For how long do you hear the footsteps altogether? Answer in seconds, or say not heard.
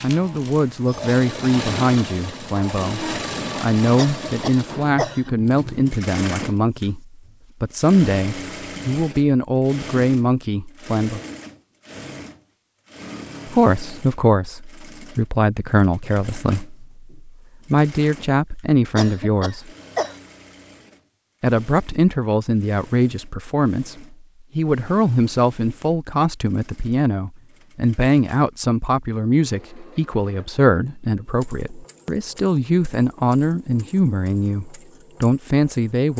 not heard.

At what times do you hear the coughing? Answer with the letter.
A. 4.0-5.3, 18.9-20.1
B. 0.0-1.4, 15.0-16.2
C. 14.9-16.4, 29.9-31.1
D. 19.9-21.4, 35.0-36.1
A.